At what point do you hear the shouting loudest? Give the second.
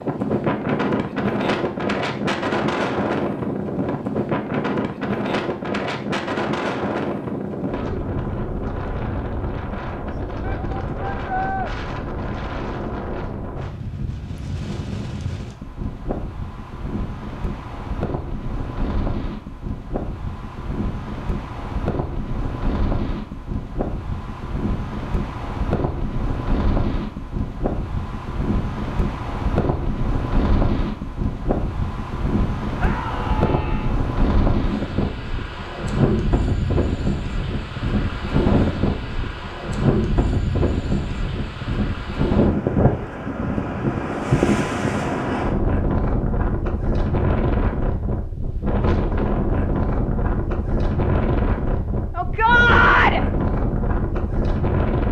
53 s.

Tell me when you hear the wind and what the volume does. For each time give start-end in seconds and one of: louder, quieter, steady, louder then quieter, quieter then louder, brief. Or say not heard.
0.0-55.0 quieter then louder.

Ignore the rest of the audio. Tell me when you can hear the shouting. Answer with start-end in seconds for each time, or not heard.
10.4-11.7, 32.8-34.0, 52.1-53.2.